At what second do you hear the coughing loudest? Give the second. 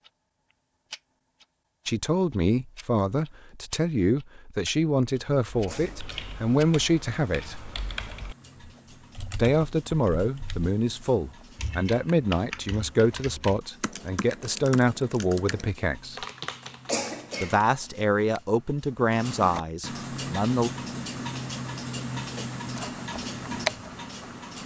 17 s.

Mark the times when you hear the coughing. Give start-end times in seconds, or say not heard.
5.7-6.3, 16.9-17.6.